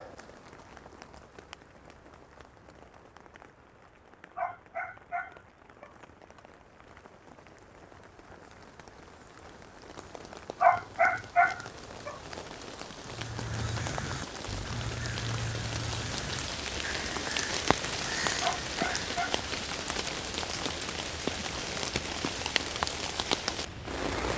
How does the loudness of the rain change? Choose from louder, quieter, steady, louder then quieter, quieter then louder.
louder.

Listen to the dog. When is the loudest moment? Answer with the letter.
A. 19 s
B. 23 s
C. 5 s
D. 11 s
D.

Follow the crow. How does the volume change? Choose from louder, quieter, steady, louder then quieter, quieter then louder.
steady.